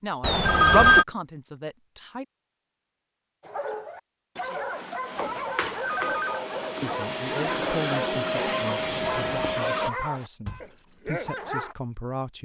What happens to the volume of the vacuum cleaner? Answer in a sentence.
The loudness of the vacuum cleaner goes up.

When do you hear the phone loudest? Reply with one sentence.
The loudest moment of the phone is at 1 second.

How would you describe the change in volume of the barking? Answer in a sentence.
The loudness of the barking stays about the same.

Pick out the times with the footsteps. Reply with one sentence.
The footsteps can't be heard in this clip.